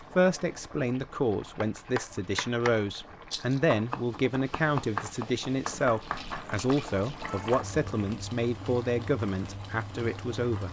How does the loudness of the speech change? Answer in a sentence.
The volume of the speech stays about the same.